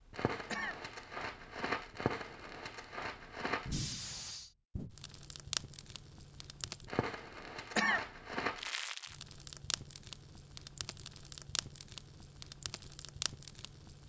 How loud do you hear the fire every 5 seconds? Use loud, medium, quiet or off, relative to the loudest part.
loud, loud, medium.